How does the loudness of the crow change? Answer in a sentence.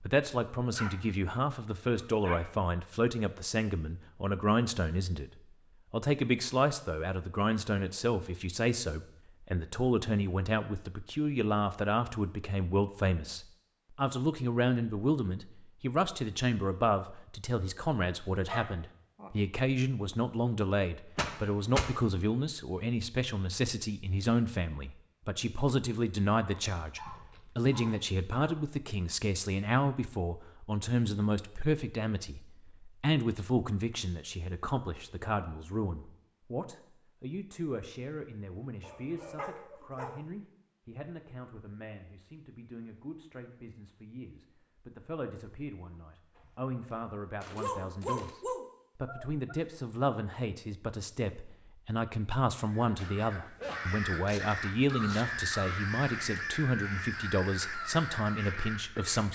The volume of the crow stays about the same.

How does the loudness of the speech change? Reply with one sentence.
The loudness of the speech goes down, then up.